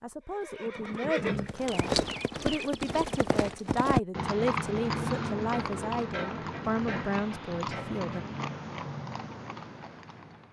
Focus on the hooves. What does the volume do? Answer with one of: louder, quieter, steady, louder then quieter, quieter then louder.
quieter.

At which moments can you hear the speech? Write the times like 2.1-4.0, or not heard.
0.0-8.2.